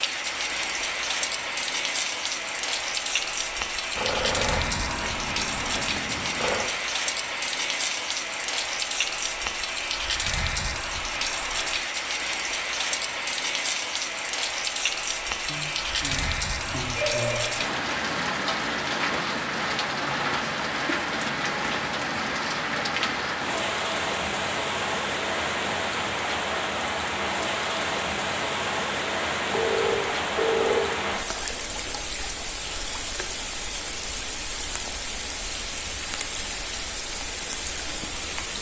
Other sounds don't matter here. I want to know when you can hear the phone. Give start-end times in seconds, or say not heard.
4.0-6.7, 15.4-17.6, 29.5-30.9.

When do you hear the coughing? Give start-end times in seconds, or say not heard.
not heard.